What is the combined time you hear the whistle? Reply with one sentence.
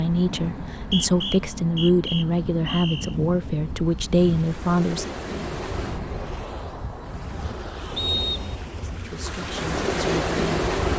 You can hear the whistle for 3 seconds altogether.